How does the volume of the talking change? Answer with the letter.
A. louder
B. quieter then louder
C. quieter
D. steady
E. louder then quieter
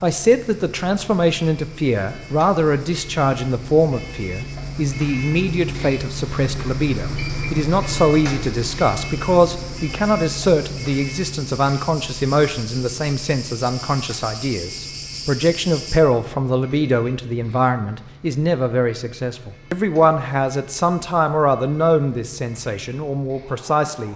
D.